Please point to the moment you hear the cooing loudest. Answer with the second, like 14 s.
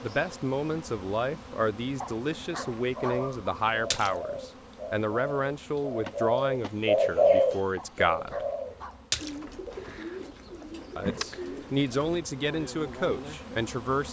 7 s.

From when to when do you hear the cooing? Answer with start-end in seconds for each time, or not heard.
3.0-12.2.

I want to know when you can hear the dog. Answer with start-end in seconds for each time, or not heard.
2.0-3.3, 7.8-9.1.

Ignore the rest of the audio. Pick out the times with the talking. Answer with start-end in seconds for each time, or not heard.
0.0-8.4, 10.9-14.0.